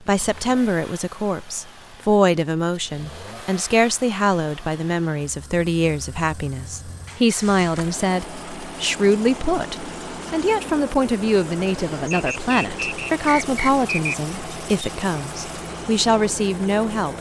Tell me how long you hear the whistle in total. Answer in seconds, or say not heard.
2 s.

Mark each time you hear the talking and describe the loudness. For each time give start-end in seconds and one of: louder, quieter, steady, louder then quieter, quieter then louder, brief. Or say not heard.
0.1-17.1 steady.